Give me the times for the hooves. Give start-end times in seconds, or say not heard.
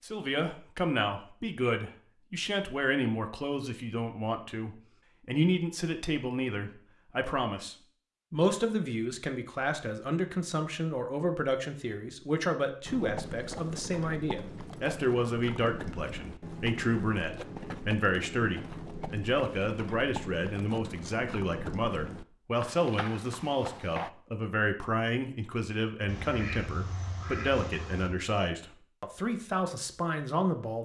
12.8-24.1.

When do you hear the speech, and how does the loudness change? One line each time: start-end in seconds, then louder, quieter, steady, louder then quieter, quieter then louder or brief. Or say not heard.
0.0-30.8 steady.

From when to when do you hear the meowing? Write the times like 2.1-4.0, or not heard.
not heard.